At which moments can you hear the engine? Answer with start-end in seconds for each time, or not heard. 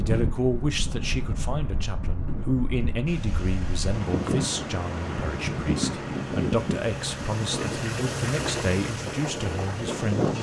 3.0-10.3.